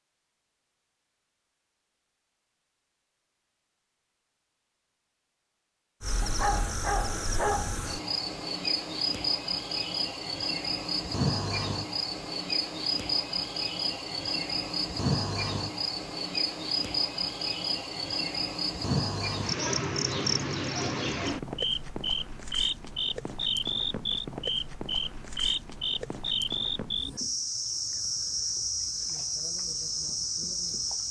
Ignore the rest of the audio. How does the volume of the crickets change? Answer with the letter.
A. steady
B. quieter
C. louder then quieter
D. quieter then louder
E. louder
A.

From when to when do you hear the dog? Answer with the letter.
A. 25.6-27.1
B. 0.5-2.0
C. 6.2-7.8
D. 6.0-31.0
C.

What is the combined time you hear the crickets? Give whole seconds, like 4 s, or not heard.
25 s.